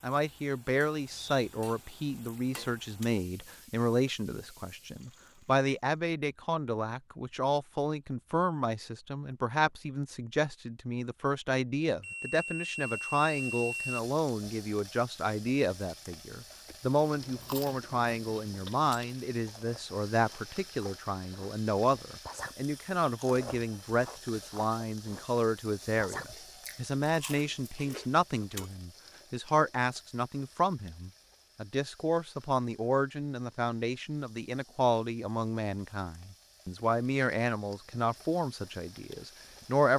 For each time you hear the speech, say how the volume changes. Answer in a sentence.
You can hear the speech from 0.0 to 39.9 s, at a steady volume.